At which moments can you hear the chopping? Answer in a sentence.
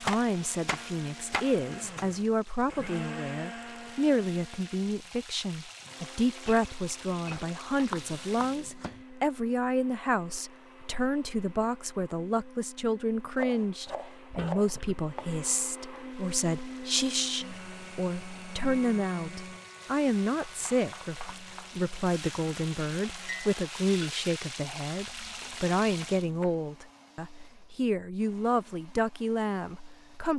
The chopping can be heard from 0.1 to 2.1 s, from 7.9 to 9.0 s, from 13.3 to 15.3 s, from 20.4 to 21.9 s and from 25.0 to 26.5 s.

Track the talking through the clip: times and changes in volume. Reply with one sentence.
The talking can be heard from 0.0 to 30.3 s, at a steady volume.